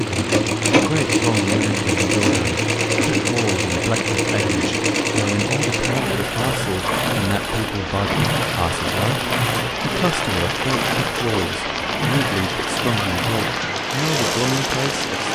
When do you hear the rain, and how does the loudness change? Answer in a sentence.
You can hear the rain from 0.0 to 15.3 s, getting louder.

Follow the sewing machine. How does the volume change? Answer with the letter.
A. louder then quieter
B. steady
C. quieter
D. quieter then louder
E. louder
C.